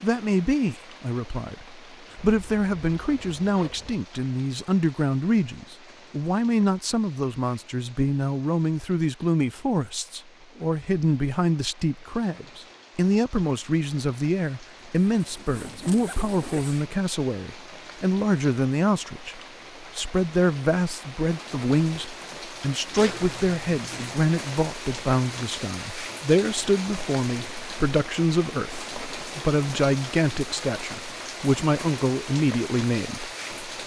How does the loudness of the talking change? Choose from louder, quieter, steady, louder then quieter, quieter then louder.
steady.